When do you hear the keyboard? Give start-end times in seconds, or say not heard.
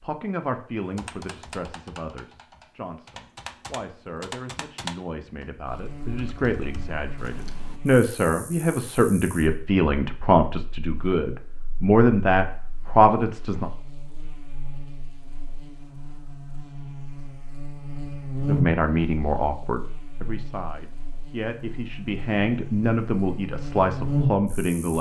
0.8-7.8.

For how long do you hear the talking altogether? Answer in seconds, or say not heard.
20 s.